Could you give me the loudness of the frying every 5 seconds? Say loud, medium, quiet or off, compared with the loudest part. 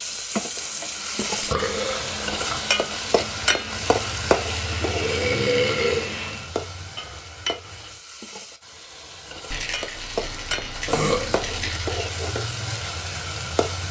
loud, medium, loud.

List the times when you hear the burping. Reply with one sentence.
The burping can be heard from 1.1 to 2.6 s, from 4.8 to 6.2 s and from 10.8 to 11.7 s.